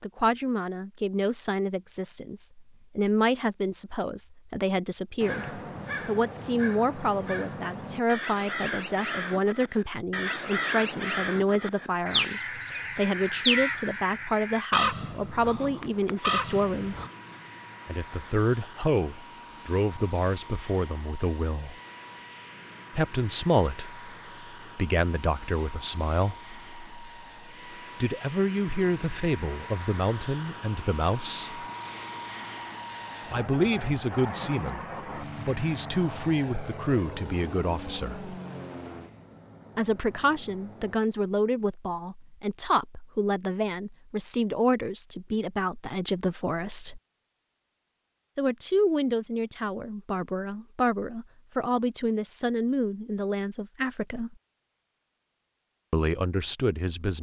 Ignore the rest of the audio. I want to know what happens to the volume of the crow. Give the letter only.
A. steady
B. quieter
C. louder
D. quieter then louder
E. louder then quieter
C.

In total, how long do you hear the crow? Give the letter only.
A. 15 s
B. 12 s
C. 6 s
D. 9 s
B.